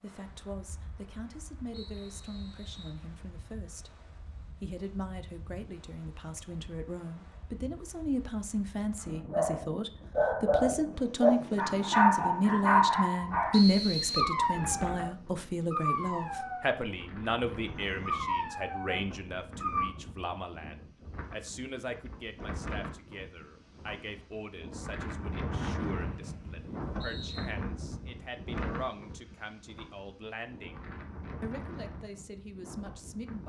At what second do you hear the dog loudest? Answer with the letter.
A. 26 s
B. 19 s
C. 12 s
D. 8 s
C.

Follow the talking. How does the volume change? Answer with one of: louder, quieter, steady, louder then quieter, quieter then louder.
louder then quieter.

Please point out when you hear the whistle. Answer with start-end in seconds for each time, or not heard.
1.7-3.0, 13.5-14.3, 26.0-27.5.